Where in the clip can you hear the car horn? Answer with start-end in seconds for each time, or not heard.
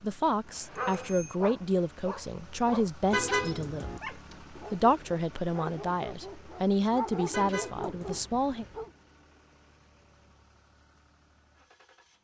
3.1-4.0, 7.3-8.2.